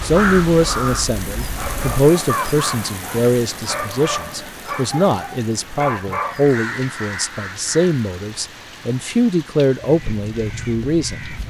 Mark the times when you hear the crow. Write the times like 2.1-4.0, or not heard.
0.0-2.8, 6.2-8.2, 9.8-11.4.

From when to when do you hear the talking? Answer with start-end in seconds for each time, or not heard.
0.0-11.2.